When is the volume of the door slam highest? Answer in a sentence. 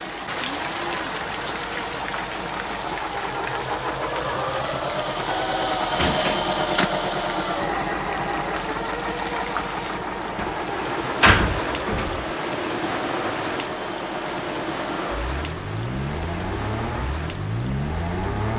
The loudest moment of the door slam is at 11 seconds.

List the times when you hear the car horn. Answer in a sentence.
The car horn can't be heard in this clip.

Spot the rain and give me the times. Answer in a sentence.
The rain can be heard from 0.0 to 18.5 s.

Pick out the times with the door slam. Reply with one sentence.
The door slam can be heard from 6.0 to 6.9 s and from 10.3 to 12.2 s.